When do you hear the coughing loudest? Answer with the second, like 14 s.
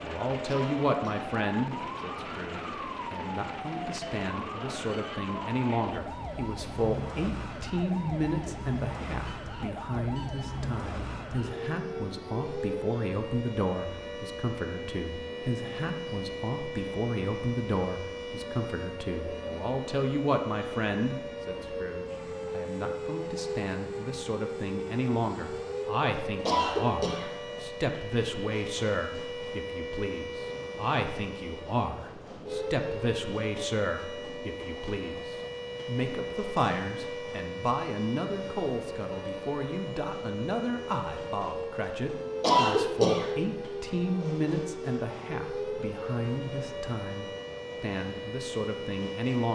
43 s.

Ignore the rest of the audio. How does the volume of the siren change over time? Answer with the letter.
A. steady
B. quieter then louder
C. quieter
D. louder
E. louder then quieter
A.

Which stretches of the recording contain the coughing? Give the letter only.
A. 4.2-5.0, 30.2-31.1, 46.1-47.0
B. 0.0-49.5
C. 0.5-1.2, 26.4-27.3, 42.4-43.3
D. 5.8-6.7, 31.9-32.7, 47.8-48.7
C.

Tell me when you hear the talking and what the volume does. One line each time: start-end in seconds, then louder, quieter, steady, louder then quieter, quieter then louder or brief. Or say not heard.
0.0-49.5 steady.